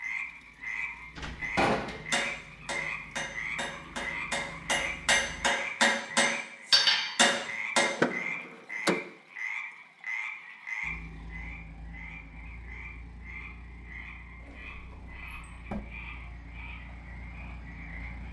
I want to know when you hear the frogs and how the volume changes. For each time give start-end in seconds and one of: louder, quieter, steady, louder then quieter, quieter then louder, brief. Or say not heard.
0.0-18.2 quieter.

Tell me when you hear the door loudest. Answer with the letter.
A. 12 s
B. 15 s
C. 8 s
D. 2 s
C.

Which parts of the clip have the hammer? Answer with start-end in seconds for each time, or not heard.
1.6-7.9.